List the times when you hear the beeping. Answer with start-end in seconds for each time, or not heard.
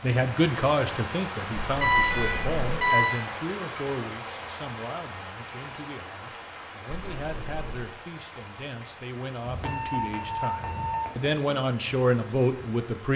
1.8-3.2, 9.6-11.3.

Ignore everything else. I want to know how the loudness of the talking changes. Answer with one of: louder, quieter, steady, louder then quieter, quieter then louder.
quieter then louder.